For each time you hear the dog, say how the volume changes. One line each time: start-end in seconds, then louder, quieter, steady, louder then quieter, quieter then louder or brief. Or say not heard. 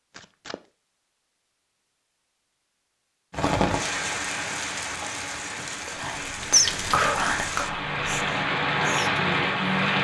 not heard.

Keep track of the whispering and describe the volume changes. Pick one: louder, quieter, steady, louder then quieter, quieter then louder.
quieter then louder.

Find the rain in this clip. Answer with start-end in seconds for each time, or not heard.
3.3-9.9.